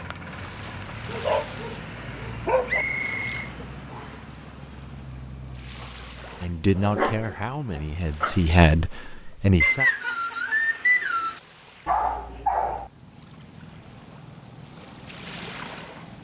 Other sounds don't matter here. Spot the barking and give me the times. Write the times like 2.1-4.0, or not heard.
1.1-2.9, 6.8-8.4, 11.8-12.9.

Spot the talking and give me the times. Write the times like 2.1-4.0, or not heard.
6.4-9.8.